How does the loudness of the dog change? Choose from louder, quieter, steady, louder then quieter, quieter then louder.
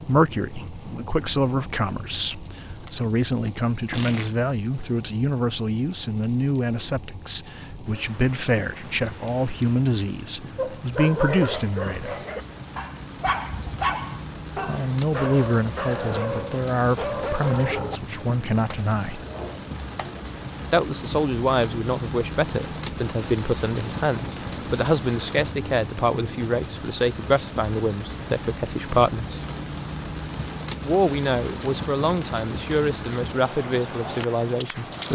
quieter.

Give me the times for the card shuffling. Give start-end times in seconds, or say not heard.
3.7-4.3.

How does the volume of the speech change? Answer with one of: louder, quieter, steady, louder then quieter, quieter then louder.
steady.